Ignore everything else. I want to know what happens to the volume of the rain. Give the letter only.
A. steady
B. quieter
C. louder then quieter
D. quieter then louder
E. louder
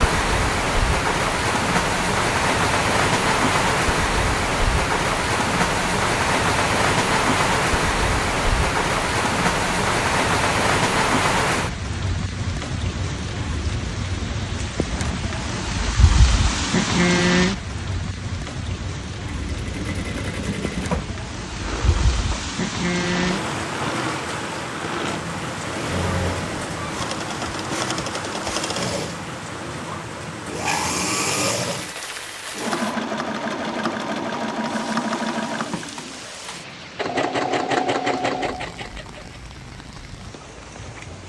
B.